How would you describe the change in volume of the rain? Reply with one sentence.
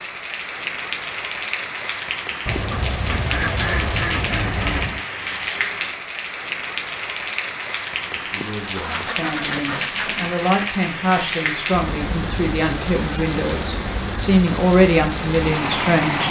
The volume of the rain stays about the same.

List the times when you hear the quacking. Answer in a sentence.
You can hear the quacking from 2.5 to 5.0 s and from 8.8 to 10.3 s.